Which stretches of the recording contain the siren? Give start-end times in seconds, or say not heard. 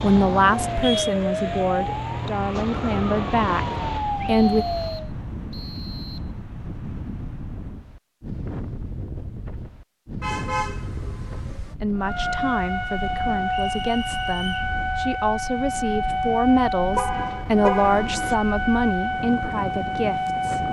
0.0-5.1, 11.9-20.6.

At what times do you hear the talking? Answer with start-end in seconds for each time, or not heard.
0.0-4.7, 11.8-20.6.